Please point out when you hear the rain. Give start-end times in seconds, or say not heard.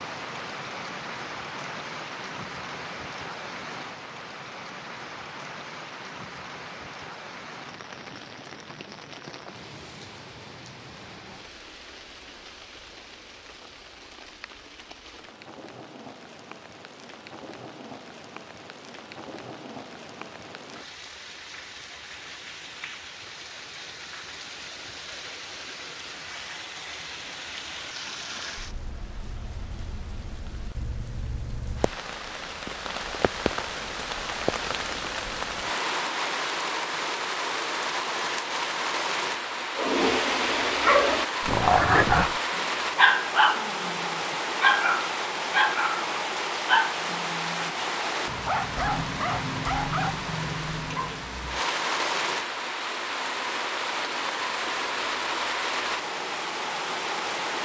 0.0-57.5.